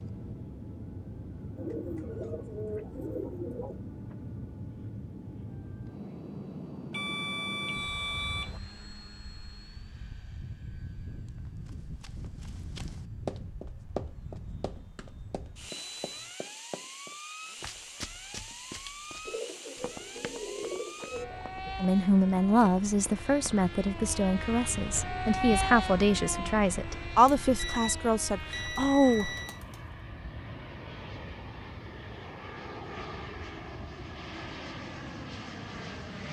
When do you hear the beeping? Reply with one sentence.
You can hear the beeping from 6.9 to 8.6 s, from 15.7 to 16.4 s and from 27.6 to 29.6 s.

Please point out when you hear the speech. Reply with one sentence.
You can hear the speech from 21.8 to 29.4 s.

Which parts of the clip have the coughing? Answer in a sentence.
The coughing can't be heard in this clip.